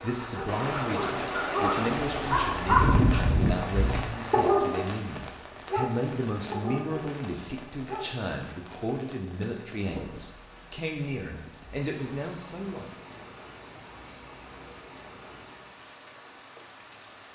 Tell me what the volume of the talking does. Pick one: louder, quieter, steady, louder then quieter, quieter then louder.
steady.